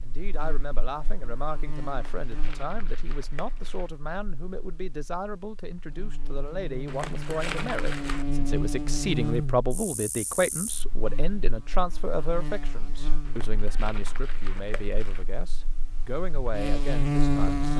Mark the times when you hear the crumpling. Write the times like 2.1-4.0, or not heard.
1.9-3.9, 6.8-8.2, 13.2-15.2.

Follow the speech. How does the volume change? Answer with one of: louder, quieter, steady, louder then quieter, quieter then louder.
louder then quieter.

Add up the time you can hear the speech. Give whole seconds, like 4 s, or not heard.
18 s.